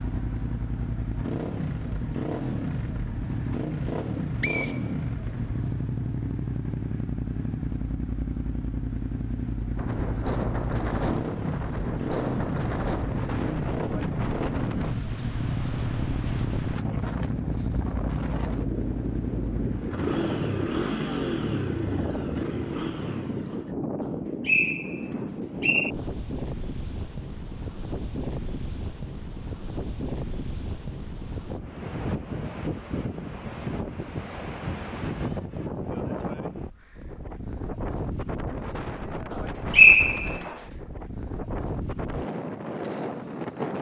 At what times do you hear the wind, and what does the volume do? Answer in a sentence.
The wind can be heard from 9.8 to 43.7 s, at a steady volume.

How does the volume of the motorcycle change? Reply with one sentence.
The volume of the motorcycle stays about the same.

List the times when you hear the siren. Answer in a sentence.
You can't hear the siren here.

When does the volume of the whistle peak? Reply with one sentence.
The loudest moment of the whistle is at 40 seconds.